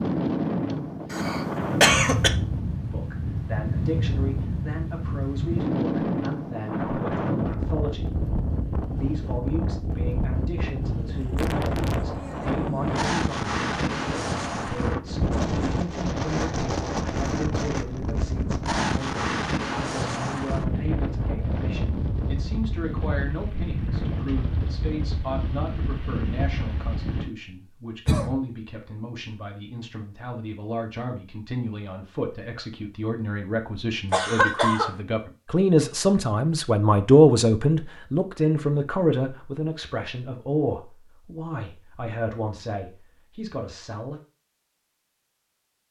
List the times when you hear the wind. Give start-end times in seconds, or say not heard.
0.0-27.3.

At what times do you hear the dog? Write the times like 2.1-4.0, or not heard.
not heard.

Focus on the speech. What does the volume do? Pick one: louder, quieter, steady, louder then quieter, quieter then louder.
louder.